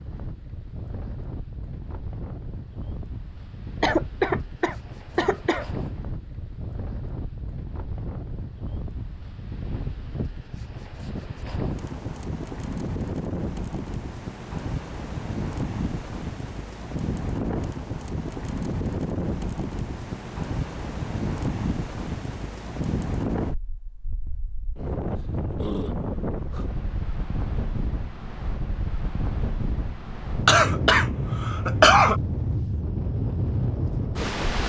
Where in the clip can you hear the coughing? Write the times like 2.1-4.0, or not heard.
3.8-5.7, 30.4-32.2.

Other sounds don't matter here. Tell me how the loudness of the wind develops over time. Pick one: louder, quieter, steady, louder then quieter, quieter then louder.
louder.